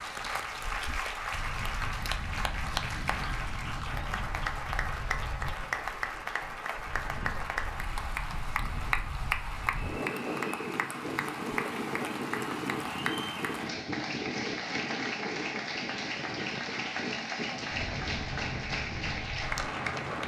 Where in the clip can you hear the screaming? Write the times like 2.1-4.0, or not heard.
not heard.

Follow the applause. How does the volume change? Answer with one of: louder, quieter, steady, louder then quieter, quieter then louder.
steady.